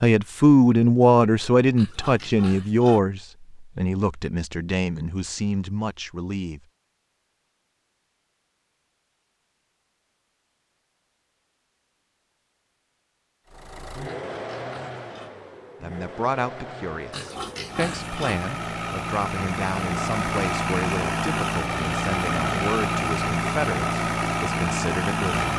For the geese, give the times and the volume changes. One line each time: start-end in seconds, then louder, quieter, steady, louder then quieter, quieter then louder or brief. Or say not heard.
not heard.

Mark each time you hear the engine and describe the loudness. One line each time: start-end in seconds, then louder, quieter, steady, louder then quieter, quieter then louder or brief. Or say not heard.
13.4-25.5 louder.